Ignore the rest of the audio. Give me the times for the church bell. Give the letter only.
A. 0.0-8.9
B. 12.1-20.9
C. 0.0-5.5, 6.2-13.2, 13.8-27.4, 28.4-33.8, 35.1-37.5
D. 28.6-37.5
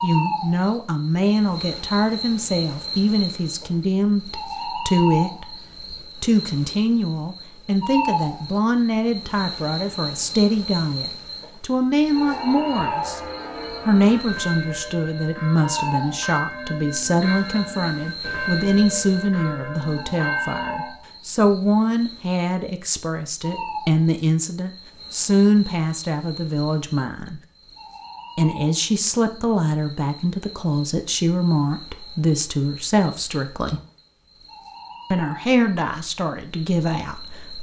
B.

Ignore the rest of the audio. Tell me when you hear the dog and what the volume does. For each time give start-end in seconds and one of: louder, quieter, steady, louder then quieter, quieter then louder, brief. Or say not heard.
not heard.